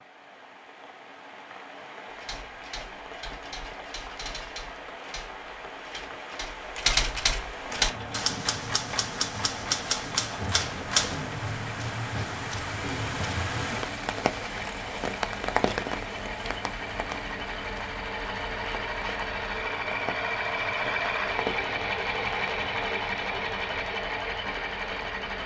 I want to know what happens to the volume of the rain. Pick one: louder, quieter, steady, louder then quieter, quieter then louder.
louder then quieter.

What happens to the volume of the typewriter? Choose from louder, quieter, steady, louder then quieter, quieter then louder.
louder.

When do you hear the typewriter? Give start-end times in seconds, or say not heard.
2.1-11.2.